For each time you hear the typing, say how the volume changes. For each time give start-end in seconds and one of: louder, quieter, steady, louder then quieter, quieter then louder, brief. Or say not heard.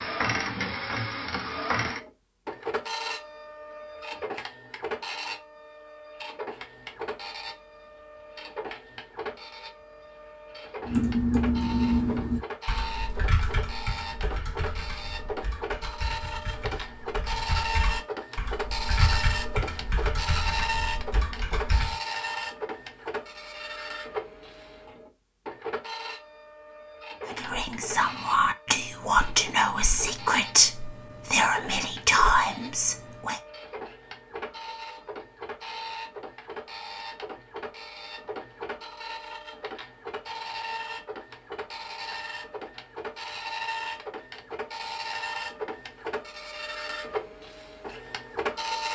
10.8-21.9 quieter then louder.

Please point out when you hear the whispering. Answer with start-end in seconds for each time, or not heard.
27.2-33.4.